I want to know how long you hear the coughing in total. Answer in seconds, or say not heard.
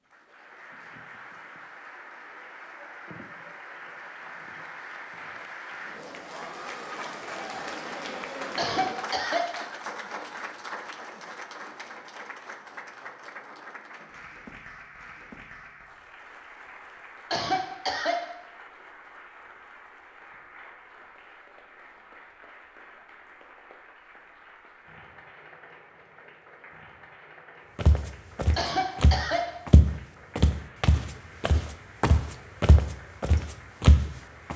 3 s.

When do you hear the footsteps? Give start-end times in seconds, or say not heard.
27.8-34.5.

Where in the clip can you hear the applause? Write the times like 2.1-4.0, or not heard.
0.0-34.5.